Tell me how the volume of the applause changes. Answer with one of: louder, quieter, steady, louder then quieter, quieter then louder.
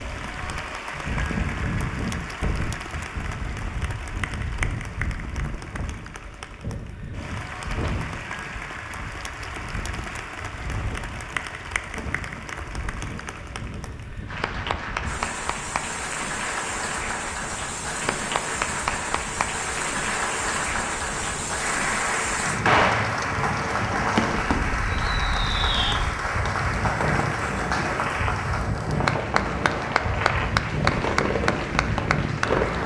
louder.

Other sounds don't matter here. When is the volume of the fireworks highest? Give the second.
23 s.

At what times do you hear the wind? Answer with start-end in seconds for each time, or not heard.
0.0-32.8.